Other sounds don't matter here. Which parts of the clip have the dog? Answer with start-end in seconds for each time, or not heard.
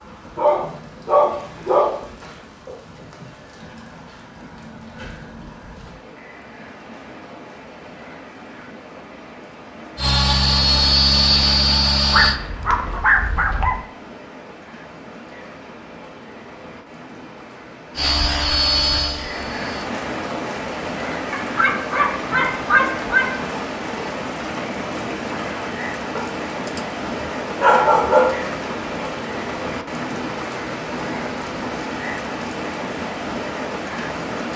0.3-2.0, 12.1-13.8, 21.3-23.3, 26.1-28.4.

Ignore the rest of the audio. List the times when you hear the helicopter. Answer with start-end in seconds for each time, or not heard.
9.9-12.4, 17.9-19.9.